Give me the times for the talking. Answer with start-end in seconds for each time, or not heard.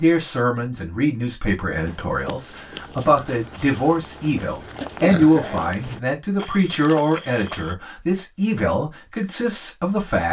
0.0-10.2.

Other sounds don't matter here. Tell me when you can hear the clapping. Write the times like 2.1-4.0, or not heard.
not heard.